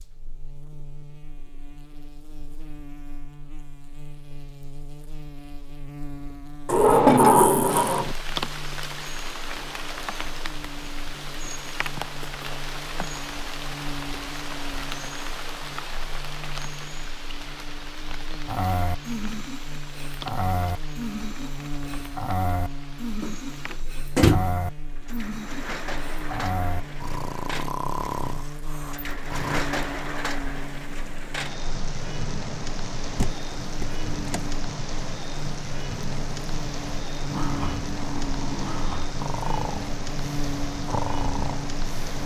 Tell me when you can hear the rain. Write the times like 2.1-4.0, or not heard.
7.7-42.2.